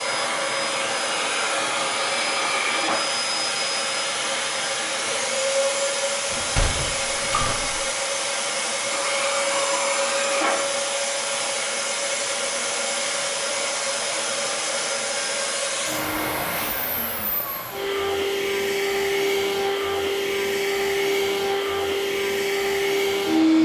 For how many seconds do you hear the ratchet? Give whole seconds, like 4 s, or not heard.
not heard.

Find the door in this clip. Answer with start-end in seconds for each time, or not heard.
6.3-7.8.